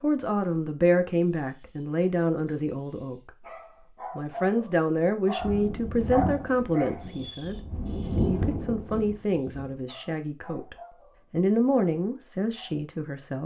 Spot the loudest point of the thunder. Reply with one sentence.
The volume of the thunder peaks at 8 seconds.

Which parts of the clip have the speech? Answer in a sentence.
The speech can be heard from 0.0 to 3.3 s, from 4.2 to 7.5 s and from 8.2 to 13.4 s.